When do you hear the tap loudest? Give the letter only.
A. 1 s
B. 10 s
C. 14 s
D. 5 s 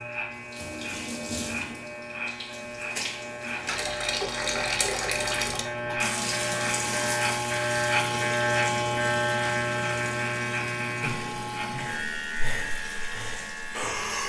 D.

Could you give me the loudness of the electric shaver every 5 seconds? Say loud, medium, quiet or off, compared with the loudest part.
medium, loud, medium.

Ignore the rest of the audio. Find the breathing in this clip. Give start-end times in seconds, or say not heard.
11.0-14.2.